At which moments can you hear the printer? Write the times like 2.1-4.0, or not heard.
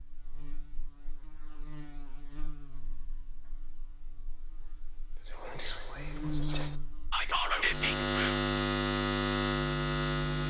not heard.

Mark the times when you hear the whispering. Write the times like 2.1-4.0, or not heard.
5.2-8.4.